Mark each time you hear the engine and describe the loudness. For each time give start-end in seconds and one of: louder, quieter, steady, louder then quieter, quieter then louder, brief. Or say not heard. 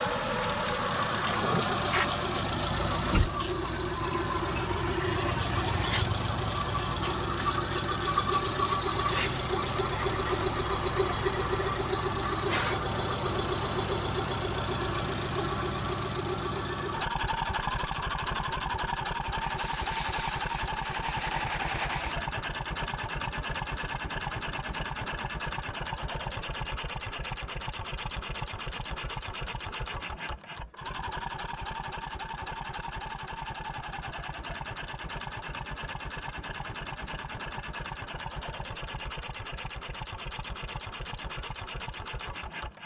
0.0-42.8 quieter.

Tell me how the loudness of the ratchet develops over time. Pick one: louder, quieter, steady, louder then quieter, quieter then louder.
steady.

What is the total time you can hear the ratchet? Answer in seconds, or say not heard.
10 s.